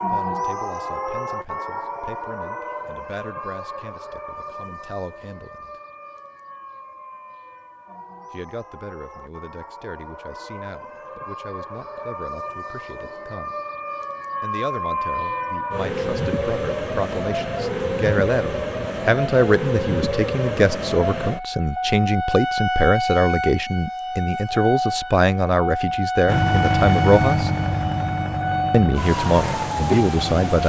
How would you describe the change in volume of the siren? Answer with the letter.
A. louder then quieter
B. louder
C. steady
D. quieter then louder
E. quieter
D.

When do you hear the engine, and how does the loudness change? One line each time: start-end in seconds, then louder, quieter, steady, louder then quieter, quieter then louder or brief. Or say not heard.
26.2-30.6 quieter.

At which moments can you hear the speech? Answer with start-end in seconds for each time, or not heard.
0.1-5.8, 8.3-13.6, 14.4-27.5, 28.7-30.6.